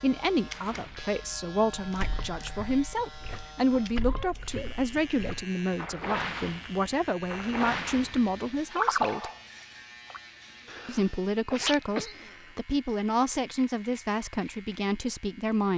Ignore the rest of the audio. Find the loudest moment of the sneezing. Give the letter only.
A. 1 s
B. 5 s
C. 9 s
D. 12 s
D.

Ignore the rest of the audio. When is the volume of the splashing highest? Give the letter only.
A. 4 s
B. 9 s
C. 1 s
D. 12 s
B.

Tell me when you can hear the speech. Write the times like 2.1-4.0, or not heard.
0.0-9.3, 10.8-15.7.